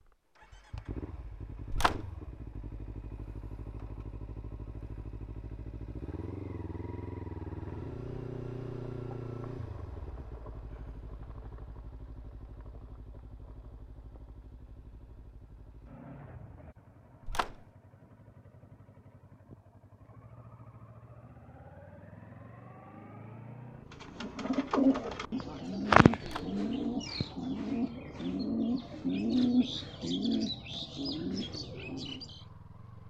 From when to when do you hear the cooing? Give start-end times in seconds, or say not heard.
23.9-32.4.